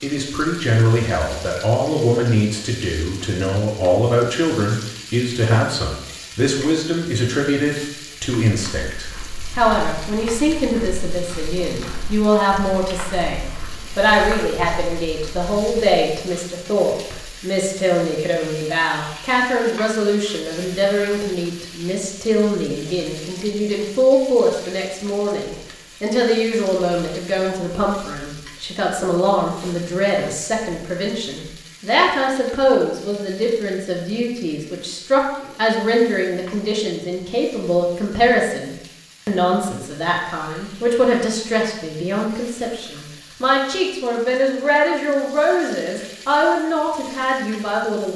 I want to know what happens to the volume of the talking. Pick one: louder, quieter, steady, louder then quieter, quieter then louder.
steady.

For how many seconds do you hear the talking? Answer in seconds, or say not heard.
48 s.